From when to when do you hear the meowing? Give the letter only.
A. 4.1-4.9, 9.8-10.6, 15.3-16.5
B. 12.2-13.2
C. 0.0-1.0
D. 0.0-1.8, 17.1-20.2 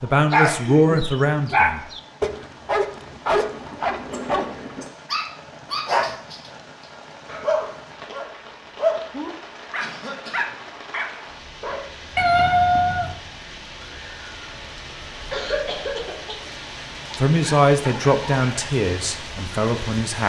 B.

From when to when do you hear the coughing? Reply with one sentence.
The coughing can be heard from 4.1 to 4.9 s, from 9.8 to 10.6 s and from 15.3 to 16.5 s.